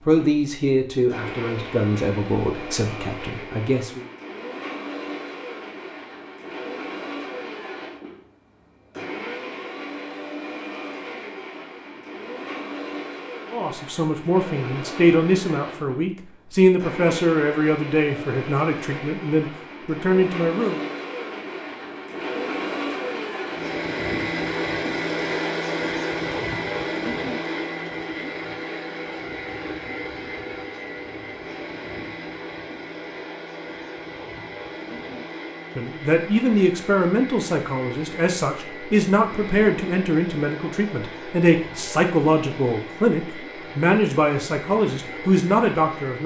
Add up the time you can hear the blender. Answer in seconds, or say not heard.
46 s.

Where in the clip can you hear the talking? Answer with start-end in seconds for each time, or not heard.
0.1-4.0, 13.5-20.8, 35.8-46.2.